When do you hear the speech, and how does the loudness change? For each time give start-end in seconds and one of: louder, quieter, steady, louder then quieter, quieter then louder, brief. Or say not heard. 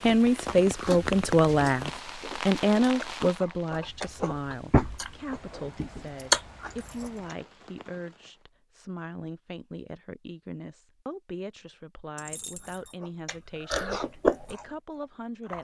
0.0-15.5 quieter.